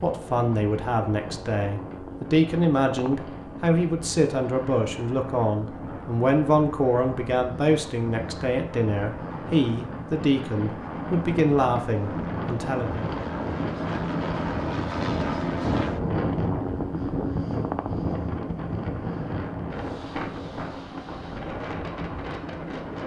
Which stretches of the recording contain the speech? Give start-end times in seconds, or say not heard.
0.0-13.1.